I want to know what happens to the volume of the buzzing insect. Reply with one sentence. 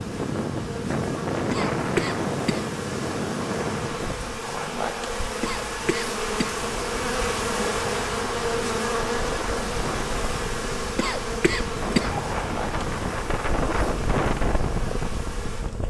The loudness of the buzzing insect goes up, then down.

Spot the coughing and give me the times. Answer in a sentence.
You can hear the coughing from 1.5 to 2.7 s, from 5.4 to 6.6 s and from 10.9 to 12.2 s.